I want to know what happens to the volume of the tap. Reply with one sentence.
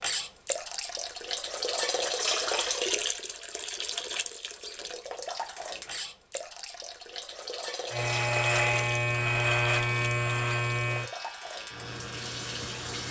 The loudness of the tap goes down.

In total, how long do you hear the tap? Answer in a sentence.
The tap can be heard for 13 seconds in total.